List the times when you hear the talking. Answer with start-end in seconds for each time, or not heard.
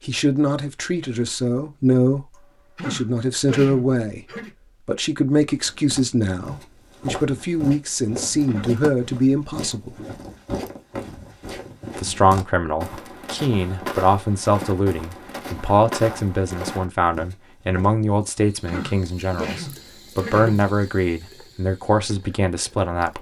0.0-4.2, 4.8-9.9, 11.9-23.1.